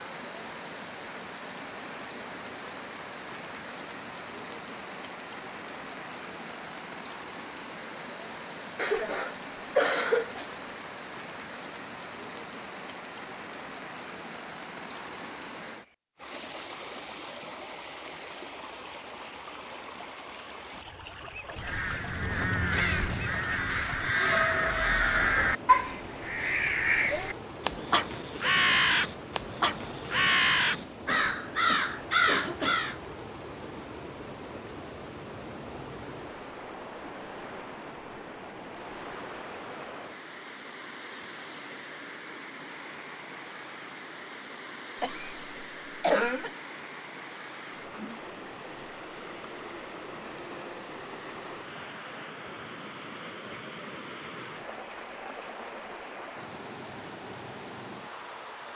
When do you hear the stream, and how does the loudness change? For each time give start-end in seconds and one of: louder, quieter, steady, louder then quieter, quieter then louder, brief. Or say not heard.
0.0-58.7 steady.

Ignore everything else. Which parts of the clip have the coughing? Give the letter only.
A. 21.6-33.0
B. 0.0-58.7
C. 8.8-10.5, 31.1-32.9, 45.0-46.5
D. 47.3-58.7
C.